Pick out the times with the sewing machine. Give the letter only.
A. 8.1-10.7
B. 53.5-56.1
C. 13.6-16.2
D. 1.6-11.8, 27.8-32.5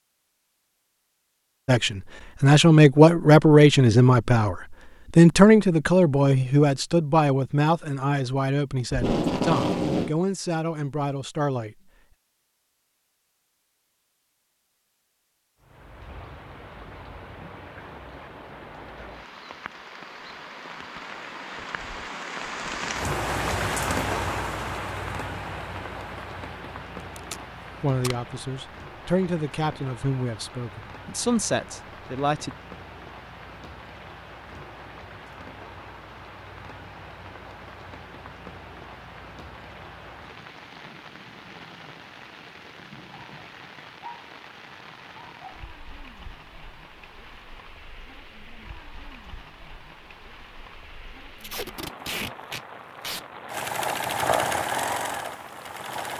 B.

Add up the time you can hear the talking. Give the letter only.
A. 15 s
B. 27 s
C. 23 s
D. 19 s
A.